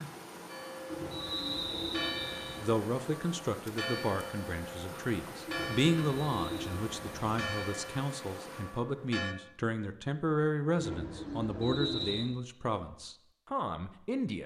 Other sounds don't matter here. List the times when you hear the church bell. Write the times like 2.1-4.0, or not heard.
0.5-9.3.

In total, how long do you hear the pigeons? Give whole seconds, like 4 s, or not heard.
5 s.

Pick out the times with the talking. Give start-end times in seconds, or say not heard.
2.6-14.4.